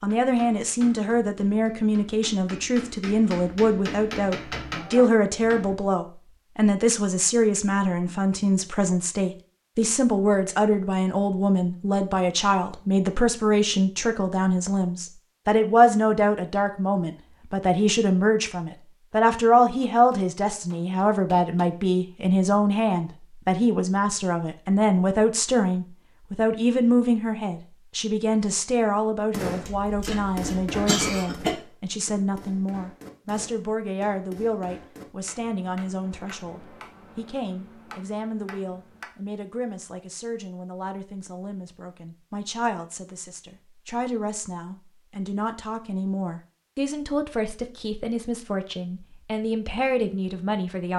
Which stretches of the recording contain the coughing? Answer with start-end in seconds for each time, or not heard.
29.6-31.6.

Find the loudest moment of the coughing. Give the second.
31 s.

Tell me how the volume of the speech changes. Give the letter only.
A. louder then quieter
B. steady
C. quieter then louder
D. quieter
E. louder
D.